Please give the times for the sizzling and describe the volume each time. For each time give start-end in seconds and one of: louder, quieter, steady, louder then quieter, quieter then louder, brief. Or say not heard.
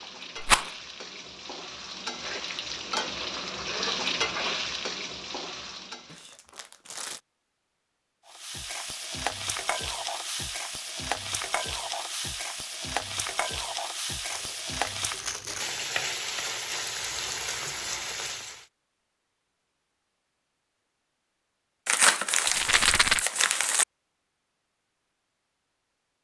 0.0-6.2 louder then quieter
8.2-18.6 steady.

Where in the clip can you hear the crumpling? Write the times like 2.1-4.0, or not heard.
6.0-7.2, 14.3-15.7, 21.9-23.9.